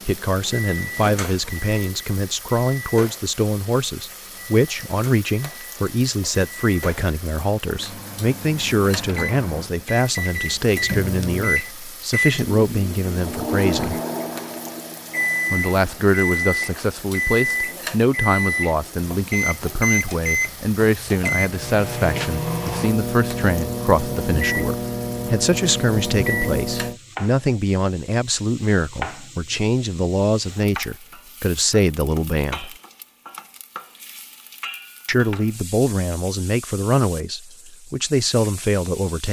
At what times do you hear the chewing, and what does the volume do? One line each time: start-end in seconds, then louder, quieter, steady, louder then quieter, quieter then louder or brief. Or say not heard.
not heard.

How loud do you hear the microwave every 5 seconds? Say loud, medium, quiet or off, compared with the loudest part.
medium, medium, loud, loud, loud, loud, off, off.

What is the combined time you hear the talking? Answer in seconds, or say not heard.
35 s.